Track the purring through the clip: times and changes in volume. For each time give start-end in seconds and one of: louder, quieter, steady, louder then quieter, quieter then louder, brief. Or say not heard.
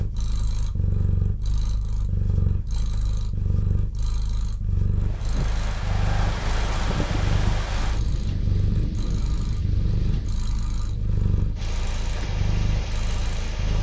0.0-13.7 steady.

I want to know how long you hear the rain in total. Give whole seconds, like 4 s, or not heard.
9 s.